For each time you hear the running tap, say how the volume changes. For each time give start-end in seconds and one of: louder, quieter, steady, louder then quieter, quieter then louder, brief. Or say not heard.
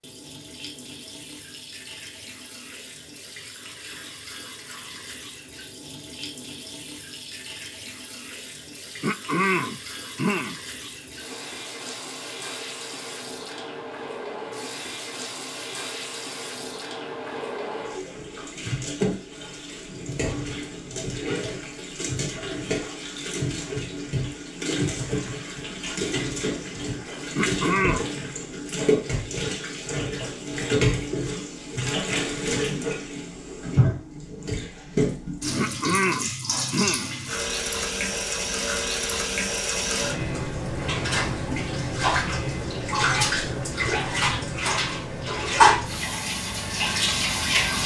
0.0-47.8 louder.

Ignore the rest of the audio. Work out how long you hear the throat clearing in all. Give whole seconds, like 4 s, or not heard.
4 s.